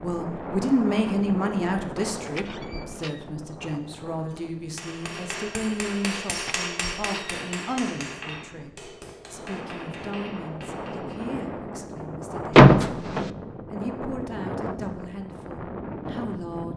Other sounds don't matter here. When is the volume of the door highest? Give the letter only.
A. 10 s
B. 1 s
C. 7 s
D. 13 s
D.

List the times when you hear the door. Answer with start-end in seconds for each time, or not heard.
2.2-3.2, 6.3-7.8, 12.6-13.3.